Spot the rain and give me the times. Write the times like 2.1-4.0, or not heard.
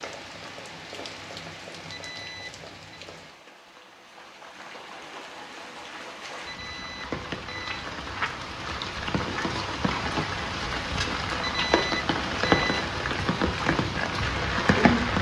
0.0-15.1.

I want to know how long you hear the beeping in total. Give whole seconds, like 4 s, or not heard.
4 s.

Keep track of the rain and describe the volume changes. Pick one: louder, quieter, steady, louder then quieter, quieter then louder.
louder.